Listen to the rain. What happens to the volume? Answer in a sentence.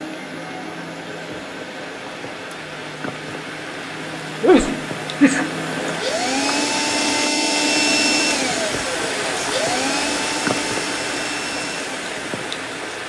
The loudness of the rain goes up.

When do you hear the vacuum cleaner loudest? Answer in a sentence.
The loudest moment of the vacuum cleaner is at 8 seconds.